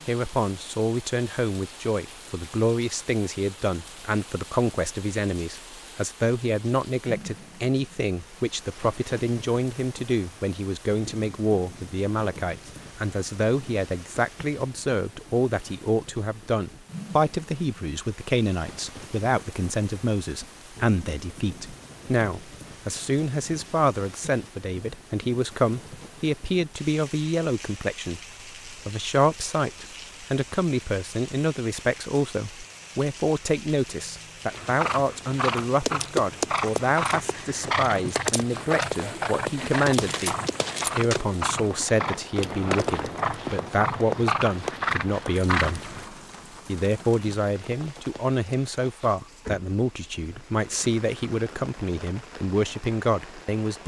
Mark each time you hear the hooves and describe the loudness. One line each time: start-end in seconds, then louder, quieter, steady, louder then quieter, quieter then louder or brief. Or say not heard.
34.5-46.0 steady.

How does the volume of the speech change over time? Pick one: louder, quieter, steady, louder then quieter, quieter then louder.
steady.